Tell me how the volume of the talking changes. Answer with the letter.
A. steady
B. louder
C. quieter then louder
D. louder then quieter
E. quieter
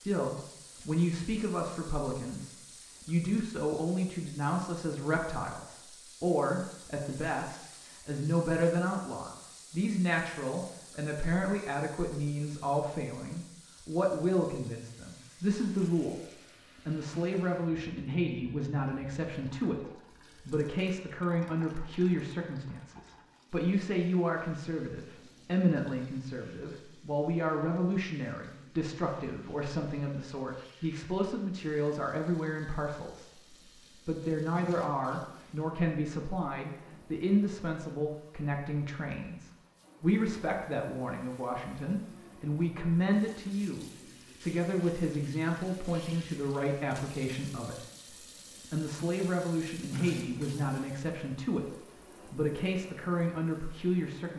A.